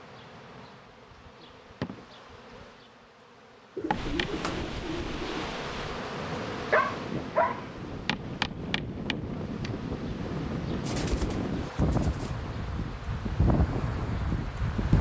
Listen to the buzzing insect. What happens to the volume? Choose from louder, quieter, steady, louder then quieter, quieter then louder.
louder then quieter.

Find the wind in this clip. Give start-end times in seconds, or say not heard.
3.9-14.9.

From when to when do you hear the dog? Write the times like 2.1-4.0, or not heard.
6.2-7.7.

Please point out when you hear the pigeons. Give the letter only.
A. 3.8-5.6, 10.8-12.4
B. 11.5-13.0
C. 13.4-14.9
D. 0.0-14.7
A.